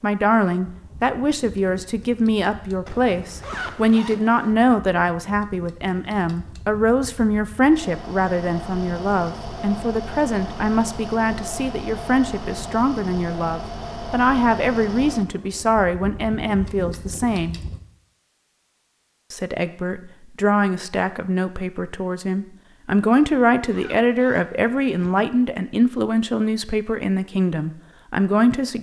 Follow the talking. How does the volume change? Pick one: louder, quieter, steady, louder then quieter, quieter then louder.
steady.